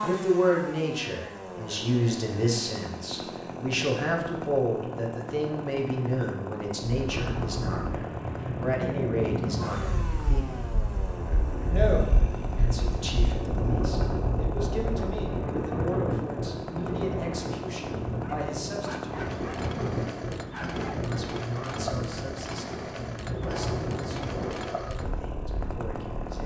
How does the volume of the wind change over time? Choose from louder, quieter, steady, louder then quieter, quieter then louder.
steady.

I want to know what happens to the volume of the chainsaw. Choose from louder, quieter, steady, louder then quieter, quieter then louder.
steady.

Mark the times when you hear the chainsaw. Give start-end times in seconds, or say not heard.
0.0-26.4.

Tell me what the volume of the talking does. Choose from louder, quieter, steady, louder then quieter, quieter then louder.
quieter.